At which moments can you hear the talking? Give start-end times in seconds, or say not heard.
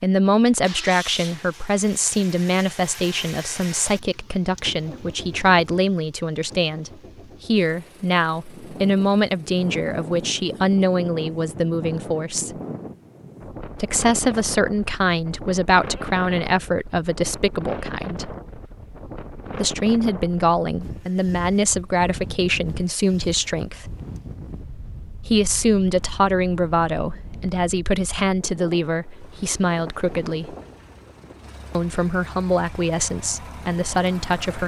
0.0-12.5, 13.8-18.4, 19.6-23.9, 25.2-30.6, 31.8-34.6.